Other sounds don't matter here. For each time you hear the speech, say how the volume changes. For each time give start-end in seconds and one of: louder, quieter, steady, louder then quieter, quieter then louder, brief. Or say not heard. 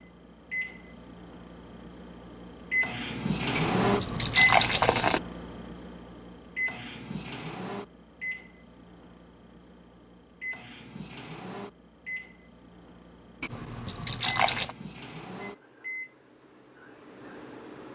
not heard.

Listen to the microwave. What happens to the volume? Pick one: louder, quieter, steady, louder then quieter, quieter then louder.
quieter.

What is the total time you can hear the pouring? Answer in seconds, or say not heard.
3 s.